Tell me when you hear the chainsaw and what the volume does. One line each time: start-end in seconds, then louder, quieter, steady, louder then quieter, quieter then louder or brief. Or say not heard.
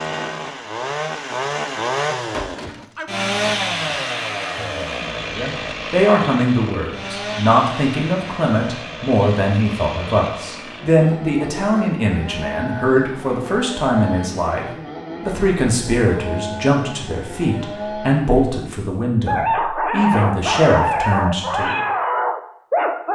0.0-18.4 quieter.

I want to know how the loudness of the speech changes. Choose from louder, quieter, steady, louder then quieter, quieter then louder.
steady.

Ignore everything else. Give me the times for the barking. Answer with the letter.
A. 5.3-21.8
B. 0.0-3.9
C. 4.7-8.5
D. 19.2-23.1
D.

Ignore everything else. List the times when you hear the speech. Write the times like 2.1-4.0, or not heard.
5.3-21.8.